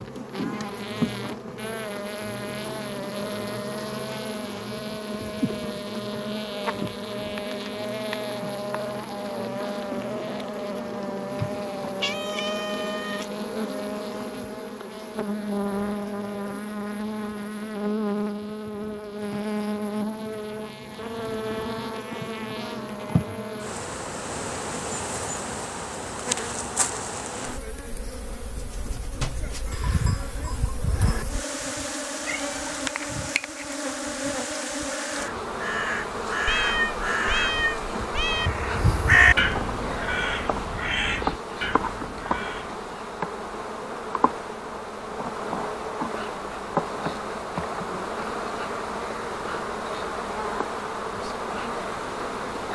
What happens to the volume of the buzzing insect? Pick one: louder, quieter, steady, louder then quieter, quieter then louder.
steady.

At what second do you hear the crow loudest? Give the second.
39 s.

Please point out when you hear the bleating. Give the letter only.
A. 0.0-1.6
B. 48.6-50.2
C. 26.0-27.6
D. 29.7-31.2
D.